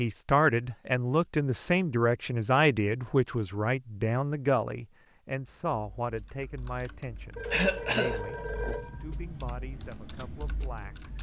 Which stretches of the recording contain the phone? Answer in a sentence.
The phone can be heard from 7.3 to 9.2 s.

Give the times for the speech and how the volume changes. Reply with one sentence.
You can hear the speech from 0.0 to 11.1 s, getting quieter.